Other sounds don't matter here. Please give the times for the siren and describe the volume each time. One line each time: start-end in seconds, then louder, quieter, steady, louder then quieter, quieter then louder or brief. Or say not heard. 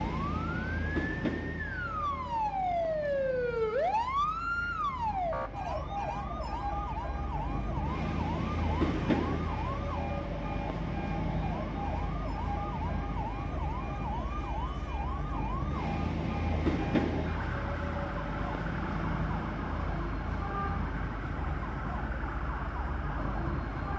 0.2-23.9 quieter.